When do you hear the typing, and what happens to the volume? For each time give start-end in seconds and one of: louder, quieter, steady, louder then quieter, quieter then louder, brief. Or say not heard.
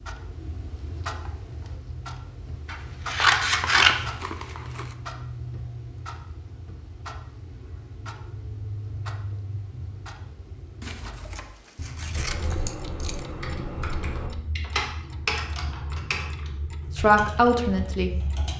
12.1-18.5 louder then quieter.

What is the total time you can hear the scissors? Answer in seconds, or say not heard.
3 s.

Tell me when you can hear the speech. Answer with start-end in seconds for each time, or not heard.
16.9-18.1.